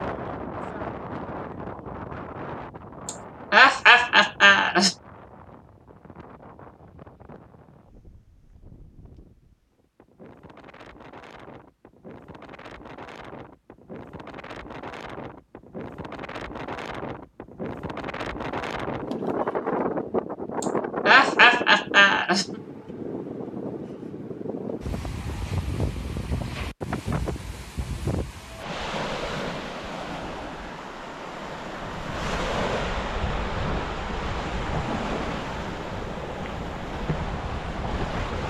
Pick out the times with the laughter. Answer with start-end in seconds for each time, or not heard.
3.0-5.0, 20.6-22.4.